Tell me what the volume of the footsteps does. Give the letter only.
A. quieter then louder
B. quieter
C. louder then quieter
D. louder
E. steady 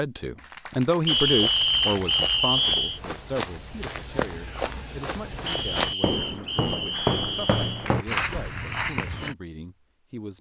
D.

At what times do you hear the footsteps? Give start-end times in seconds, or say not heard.
1.1-9.3.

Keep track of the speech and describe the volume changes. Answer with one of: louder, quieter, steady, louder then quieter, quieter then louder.
quieter.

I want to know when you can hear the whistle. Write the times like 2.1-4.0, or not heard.
1.1-3.0, 5.5-7.9.